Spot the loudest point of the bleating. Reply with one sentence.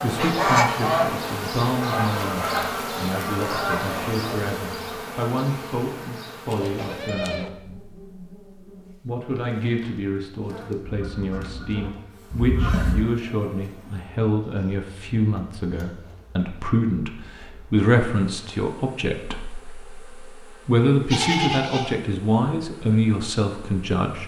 The volume of the bleating peaks at 21 seconds.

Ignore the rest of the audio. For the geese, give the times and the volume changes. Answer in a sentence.
You can hear the geese from 0.0 to 4.2 s, getting quieter then louder; and briefly from 10.8 to 13.1 s.